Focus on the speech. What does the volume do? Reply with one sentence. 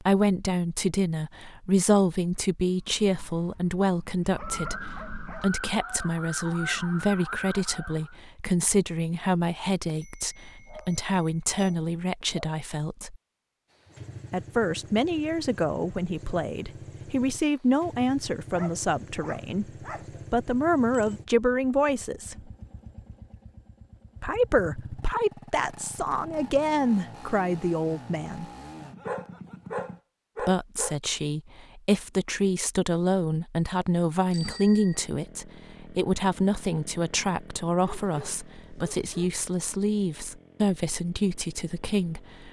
The volume of the speech stays about the same.